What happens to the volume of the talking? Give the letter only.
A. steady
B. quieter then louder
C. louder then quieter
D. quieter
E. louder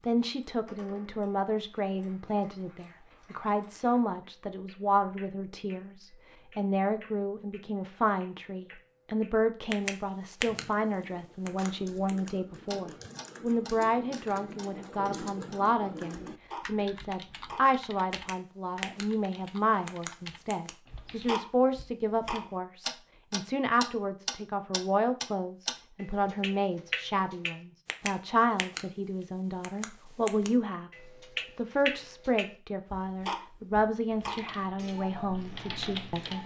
A.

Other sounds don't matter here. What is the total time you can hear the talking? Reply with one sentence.
You can hear the talking for 36 seconds altogether.